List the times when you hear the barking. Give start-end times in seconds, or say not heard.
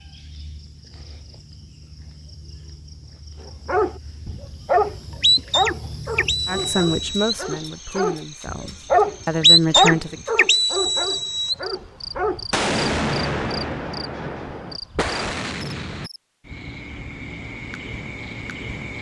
3.6-12.4.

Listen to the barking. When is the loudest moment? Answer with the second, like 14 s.
10 s.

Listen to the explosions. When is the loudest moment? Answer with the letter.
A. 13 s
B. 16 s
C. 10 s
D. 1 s
A.